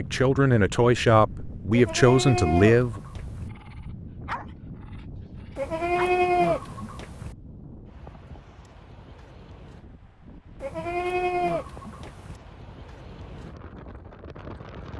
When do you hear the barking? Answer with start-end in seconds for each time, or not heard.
3.5-6.2.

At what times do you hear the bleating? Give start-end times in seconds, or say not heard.
1.7-3.5, 5.5-7.3, 10.6-12.4.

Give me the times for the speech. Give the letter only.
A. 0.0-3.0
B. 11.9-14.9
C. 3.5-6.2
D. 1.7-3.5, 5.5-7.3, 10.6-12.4
A.